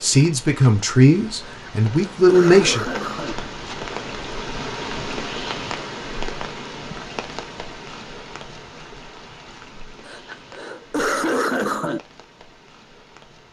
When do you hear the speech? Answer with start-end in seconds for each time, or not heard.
0.0-2.8.